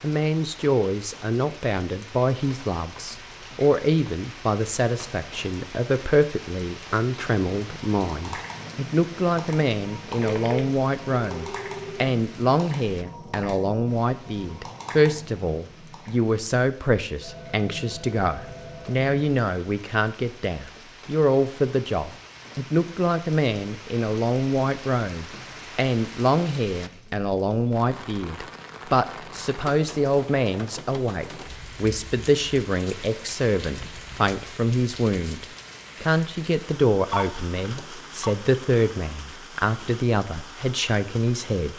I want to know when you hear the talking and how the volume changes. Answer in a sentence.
You can hear the talking from 0.0 to 41.7 s, at a steady volume.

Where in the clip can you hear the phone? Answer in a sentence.
The phone can be heard from 10.2 to 12.0 s, from 17.2 to 19.1 s and from 37.1 to 38.4 s.